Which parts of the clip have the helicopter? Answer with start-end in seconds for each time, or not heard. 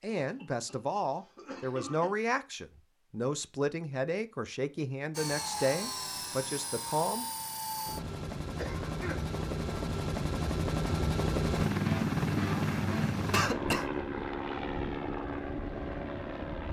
5.1-16.6.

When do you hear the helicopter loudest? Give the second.
12 s.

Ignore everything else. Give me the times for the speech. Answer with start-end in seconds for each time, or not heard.
0.0-7.2.